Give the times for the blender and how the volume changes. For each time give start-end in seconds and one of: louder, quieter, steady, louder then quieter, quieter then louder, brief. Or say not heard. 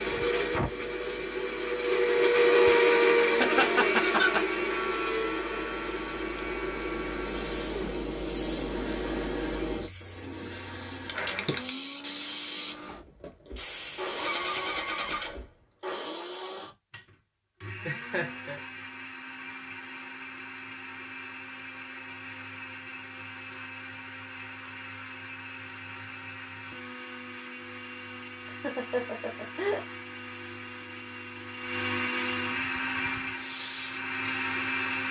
0.0-35.0 quieter then louder.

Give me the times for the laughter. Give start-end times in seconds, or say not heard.
3.2-4.5, 17.9-18.6, 28.4-29.9.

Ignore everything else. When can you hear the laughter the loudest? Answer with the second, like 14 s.
4 s.